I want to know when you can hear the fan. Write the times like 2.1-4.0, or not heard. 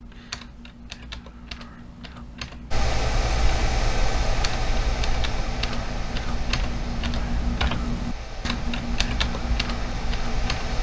2.7-10.7.